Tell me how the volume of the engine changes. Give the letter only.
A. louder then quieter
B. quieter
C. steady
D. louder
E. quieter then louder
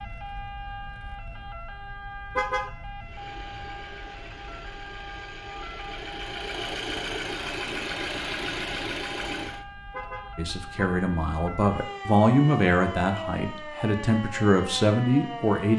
D.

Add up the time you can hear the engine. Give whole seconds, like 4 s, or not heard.
7 s.